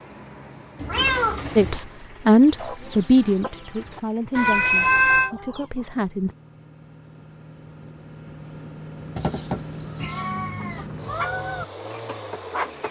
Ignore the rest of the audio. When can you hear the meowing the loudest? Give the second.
5 s.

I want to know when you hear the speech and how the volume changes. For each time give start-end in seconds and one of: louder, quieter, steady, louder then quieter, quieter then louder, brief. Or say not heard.
1.6-6.3 quieter.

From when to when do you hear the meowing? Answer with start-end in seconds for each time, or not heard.
0.8-1.8, 4.3-5.3, 9.2-10.8.